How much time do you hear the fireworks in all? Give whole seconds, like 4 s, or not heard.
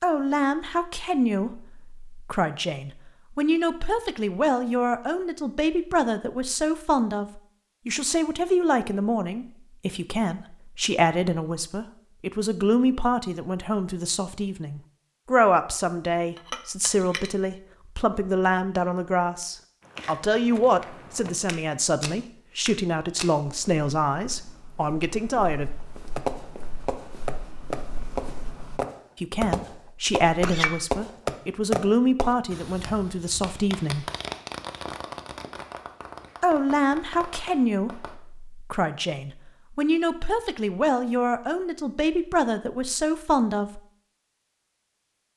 12 s.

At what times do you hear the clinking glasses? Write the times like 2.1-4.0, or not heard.
16.4-17.3, 30.2-30.9.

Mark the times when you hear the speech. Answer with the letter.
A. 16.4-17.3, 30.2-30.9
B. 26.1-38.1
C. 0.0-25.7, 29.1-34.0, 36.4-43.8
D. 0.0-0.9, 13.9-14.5
C.